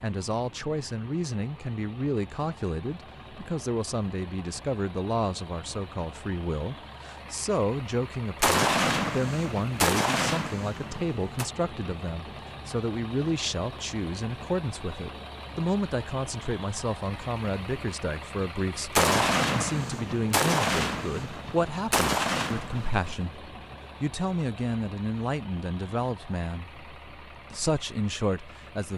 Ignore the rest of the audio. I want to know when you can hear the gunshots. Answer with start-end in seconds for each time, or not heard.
8.4-11.4, 18.9-23.1.